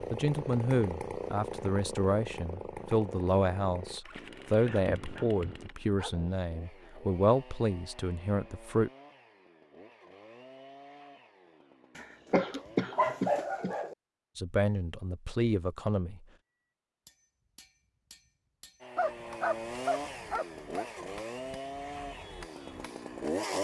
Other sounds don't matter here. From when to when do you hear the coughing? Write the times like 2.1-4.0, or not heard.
4.7-5.5, 12.3-13.8.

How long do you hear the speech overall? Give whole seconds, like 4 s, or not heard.
11 s.